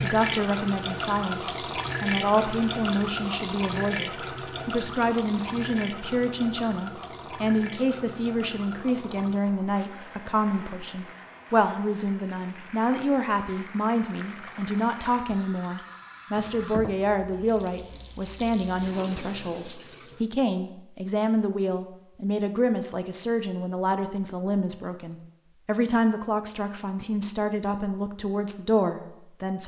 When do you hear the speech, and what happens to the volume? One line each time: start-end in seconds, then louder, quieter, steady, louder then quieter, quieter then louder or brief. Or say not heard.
0.0-29.6 steady.